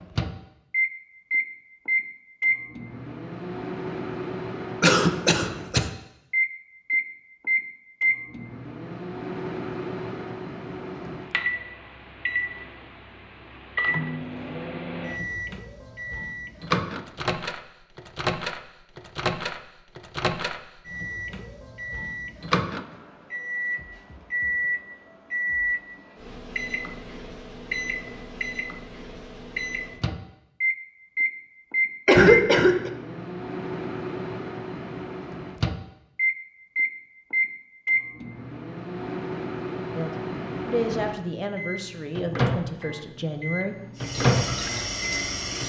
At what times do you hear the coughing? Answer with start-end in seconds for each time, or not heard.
4.8-5.8, 32.0-32.9.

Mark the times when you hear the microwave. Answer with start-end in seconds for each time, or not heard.
0.0-45.6.